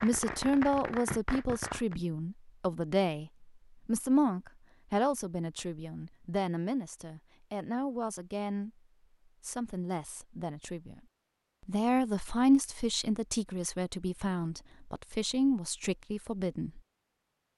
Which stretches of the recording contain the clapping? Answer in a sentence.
You can hear the clapping from 0.0 to 1.9 s.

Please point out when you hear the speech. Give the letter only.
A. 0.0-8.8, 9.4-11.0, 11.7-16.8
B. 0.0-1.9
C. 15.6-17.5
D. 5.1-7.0
A.